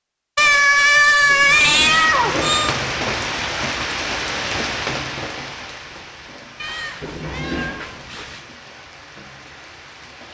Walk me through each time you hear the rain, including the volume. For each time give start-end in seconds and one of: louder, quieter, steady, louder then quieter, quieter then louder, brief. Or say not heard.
1.8-10.2 quieter.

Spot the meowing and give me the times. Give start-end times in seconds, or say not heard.
0.3-2.8, 6.6-8.4.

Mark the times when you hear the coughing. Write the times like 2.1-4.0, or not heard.
not heard.